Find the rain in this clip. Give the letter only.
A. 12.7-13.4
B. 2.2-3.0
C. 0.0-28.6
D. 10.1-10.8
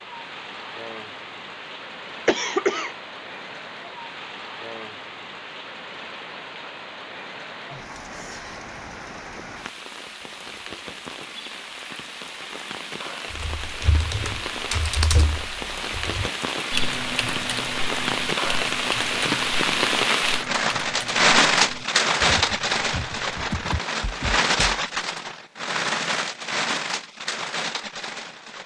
C.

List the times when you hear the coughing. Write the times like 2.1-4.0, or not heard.
2.2-3.0.